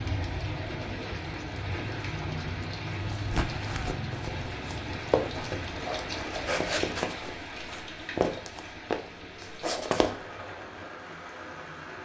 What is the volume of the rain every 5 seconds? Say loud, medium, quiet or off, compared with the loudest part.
loud, loud, medium.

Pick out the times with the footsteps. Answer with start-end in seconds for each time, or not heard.
3.1-10.2.